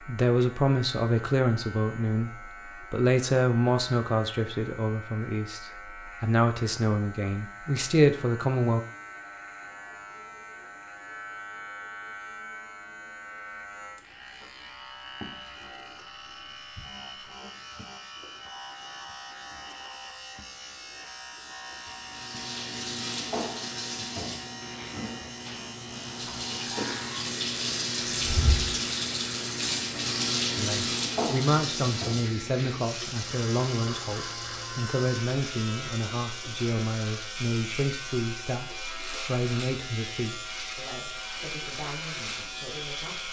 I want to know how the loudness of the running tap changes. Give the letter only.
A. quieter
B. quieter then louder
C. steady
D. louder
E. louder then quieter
E.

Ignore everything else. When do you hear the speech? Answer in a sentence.
The speech can be heard from 0.1 to 8.8 s and from 30.6 to 43.2 s.